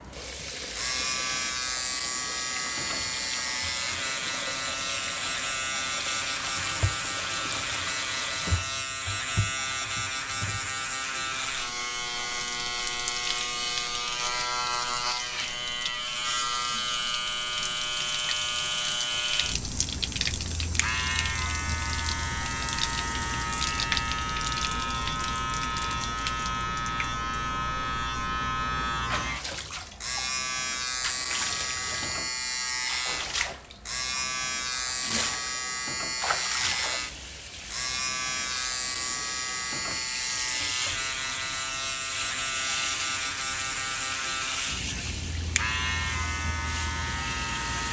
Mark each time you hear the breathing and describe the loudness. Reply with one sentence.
You can't hear the breathing here.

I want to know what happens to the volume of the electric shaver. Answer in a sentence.
The volume of the electric shaver stays about the same.